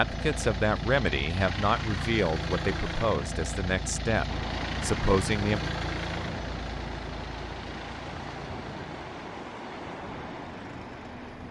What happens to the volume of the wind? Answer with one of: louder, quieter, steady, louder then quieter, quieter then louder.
steady.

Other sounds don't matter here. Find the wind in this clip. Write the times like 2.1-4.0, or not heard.
4.2-11.4.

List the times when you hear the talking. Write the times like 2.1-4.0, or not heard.
0.0-5.7.